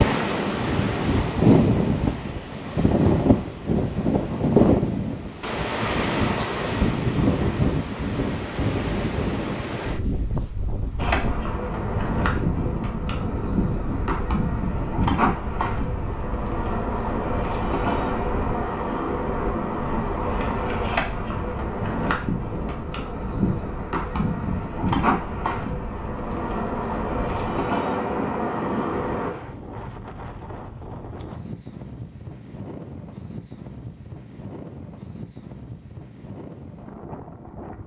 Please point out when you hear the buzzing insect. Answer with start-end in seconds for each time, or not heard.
10.9-29.4.